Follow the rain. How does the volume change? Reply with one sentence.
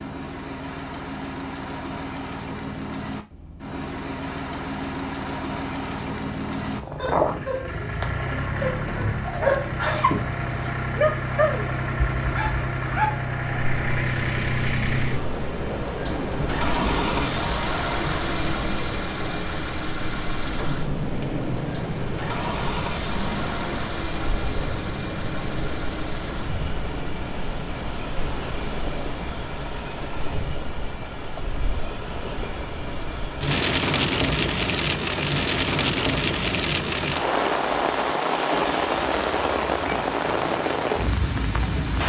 The volume of the rain goes up.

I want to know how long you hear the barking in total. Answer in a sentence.
The barking can be heard for 6 seconds in total.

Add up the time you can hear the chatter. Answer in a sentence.
The chatter can't be heard in this clip.